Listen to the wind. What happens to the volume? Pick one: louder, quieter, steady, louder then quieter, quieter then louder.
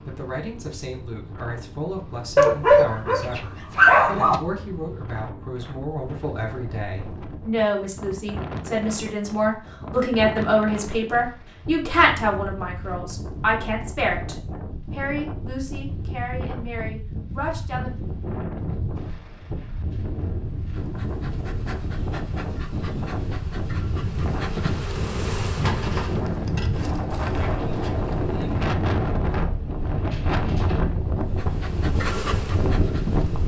louder.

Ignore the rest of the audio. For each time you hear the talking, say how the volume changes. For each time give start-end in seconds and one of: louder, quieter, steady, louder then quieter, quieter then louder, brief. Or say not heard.
0.1-17.9 louder then quieter.